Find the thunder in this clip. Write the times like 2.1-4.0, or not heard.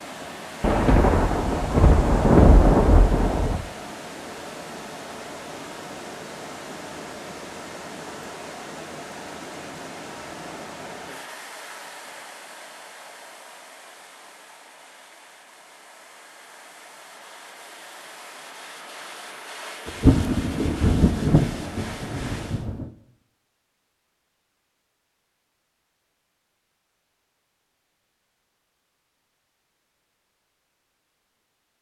0.6-3.6, 19.9-22.9.